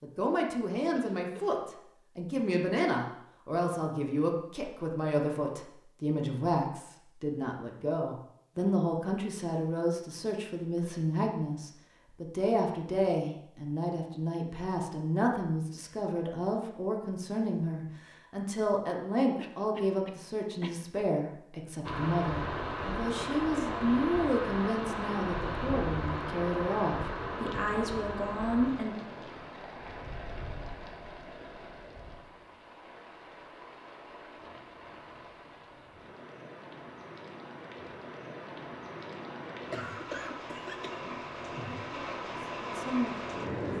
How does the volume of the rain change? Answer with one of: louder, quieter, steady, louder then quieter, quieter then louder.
quieter then louder.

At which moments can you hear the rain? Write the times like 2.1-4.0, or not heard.
21.8-43.7.